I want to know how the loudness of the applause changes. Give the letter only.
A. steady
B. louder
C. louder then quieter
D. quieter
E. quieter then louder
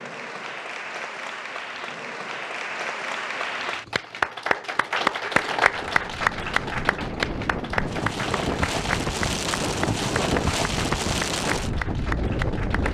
C.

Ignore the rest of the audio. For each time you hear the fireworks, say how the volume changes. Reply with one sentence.
You can't hear the fireworks here.